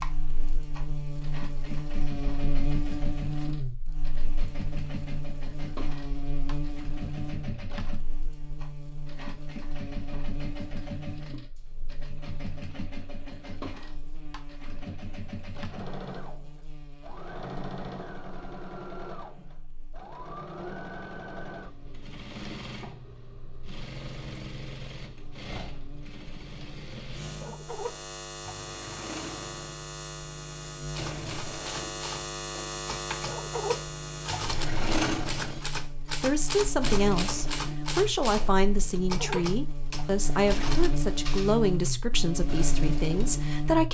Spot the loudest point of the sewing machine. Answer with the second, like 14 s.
35 s.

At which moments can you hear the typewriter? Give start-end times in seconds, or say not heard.
30.9-41.9.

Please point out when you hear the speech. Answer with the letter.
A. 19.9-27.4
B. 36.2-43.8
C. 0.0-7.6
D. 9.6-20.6
B.